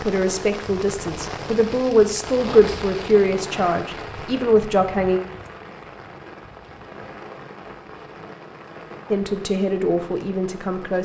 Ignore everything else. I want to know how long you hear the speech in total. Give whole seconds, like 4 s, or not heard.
7 s.